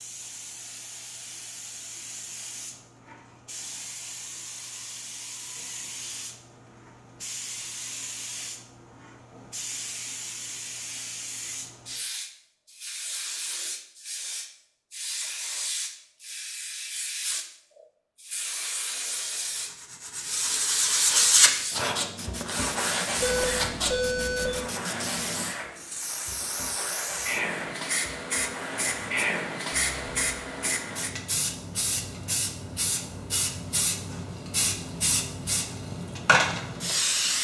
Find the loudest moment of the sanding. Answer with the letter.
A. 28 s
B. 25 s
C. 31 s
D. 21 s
D.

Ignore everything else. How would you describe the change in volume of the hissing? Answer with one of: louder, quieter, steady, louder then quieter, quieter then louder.
louder.